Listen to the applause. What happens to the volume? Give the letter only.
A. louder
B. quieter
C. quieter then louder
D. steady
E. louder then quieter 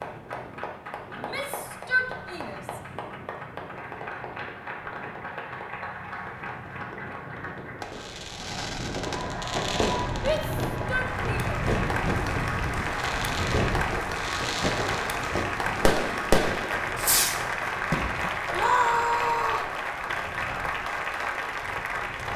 A.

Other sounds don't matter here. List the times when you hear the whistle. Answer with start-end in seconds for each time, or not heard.
not heard.